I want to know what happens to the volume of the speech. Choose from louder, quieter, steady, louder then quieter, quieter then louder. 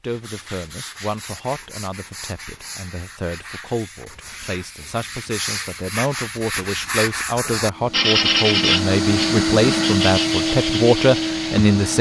louder.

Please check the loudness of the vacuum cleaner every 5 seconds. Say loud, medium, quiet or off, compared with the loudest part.
off, loud, loud.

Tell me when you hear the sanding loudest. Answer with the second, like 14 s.
8 s.